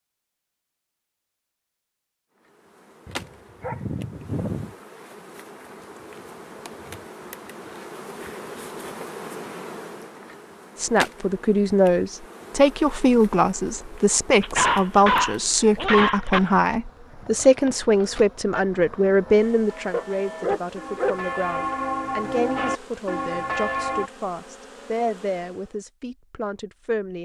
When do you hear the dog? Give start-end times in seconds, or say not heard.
3.0-4.7, 14.4-16.4, 19.9-21.1.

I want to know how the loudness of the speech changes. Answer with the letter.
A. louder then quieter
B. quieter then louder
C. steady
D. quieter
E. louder
D.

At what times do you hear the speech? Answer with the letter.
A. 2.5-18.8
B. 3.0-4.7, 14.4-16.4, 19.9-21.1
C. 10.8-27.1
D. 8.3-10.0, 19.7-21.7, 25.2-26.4
C.